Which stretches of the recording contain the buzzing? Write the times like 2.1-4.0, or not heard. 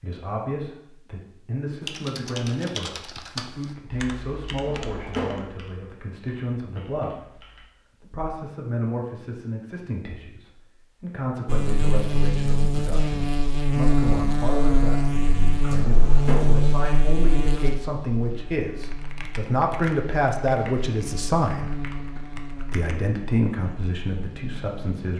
11.4-25.1.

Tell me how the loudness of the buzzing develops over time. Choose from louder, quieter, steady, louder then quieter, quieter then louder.
quieter.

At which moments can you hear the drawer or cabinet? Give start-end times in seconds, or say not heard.
4.7-5.5, 15.8-16.6.